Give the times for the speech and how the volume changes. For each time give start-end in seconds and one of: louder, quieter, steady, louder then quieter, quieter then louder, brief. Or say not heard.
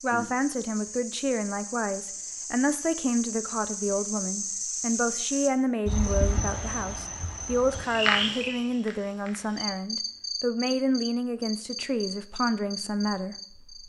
0.0-13.8 steady.